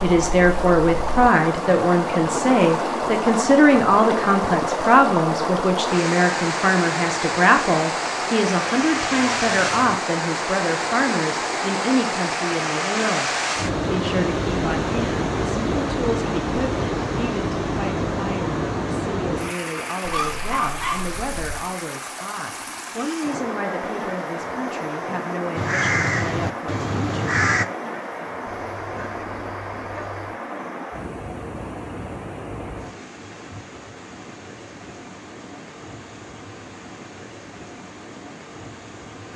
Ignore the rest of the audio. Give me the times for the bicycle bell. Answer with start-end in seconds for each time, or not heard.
not heard.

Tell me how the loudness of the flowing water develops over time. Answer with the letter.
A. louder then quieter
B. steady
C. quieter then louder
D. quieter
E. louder
D.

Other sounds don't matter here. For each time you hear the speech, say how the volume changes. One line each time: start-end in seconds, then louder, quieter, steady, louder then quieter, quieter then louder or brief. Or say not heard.
0.0-27.3 quieter.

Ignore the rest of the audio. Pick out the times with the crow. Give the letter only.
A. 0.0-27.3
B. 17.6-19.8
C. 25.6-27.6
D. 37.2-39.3
C.